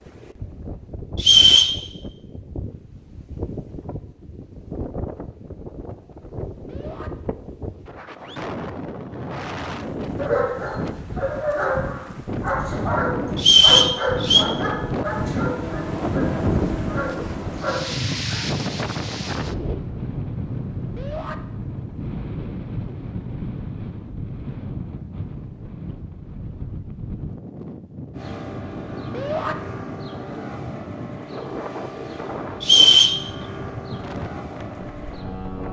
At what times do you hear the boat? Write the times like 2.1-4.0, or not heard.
14.7-17.9, 28.1-35.6.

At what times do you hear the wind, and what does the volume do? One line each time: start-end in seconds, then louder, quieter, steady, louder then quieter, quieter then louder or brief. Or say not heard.
0.0-35.6 louder then quieter.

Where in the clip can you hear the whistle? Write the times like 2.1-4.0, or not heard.
1.1-1.8, 13.3-14.4, 32.6-33.2.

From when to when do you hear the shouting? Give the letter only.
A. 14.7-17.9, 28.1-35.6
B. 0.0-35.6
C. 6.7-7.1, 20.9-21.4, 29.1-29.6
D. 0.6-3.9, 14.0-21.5
C.